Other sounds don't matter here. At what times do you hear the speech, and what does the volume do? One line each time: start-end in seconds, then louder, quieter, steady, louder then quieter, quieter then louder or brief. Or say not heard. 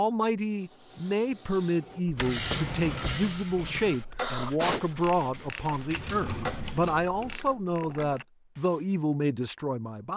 0.0-10.1 steady.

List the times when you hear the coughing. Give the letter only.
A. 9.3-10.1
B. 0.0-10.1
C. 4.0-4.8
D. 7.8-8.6
C.